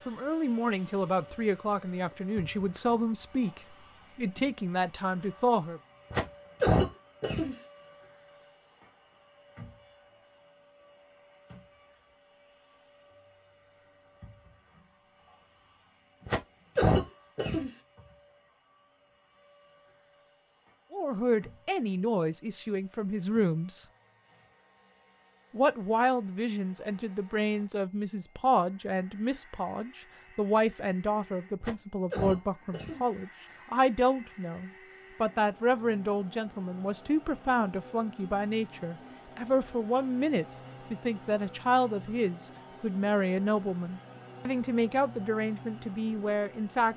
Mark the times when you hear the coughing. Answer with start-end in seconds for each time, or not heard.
6.1-7.5, 16.2-17.7, 31.6-33.0.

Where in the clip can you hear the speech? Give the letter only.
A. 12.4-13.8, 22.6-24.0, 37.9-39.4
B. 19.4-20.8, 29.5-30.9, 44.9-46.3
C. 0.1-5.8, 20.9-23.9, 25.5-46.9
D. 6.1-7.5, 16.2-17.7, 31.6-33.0
C.